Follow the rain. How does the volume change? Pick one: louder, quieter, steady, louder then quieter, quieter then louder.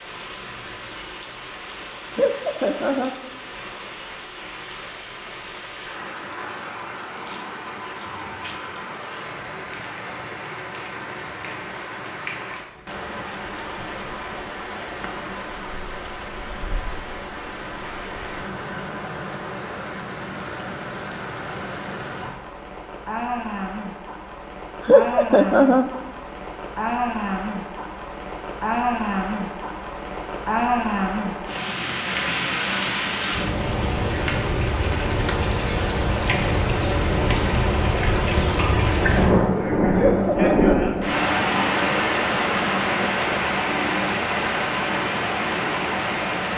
louder.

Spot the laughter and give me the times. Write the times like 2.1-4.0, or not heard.
2.1-3.1, 24.9-25.9, 40.0-41.0.